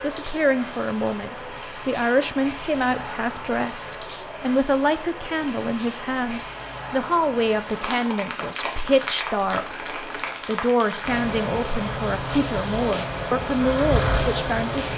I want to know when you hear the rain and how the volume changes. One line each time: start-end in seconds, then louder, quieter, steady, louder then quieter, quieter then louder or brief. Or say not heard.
0.0-14.9 steady.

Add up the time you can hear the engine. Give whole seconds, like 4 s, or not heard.
4 s.